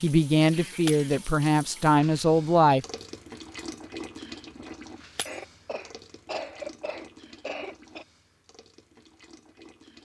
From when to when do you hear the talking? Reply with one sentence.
You can hear the talking from 0.0 to 2.9 s.